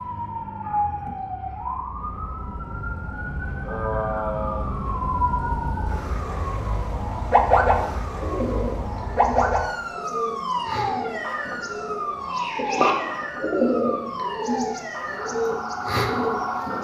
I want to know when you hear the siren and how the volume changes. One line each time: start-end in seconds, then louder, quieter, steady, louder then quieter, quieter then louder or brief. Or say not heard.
0.0-16.7 louder then quieter.